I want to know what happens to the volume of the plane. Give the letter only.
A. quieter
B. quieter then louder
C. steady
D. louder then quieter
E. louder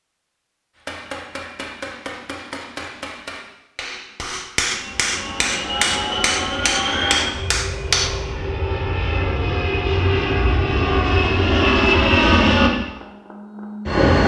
E.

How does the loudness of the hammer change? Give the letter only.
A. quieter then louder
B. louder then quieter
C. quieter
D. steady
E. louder
E.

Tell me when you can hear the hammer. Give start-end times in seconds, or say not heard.
0.8-8.2.